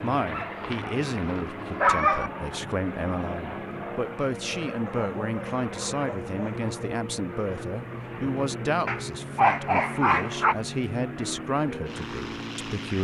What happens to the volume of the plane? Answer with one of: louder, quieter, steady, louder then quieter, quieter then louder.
steady.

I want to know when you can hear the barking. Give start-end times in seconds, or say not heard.
0.2-2.3, 4.8-6.6, 8.8-10.6.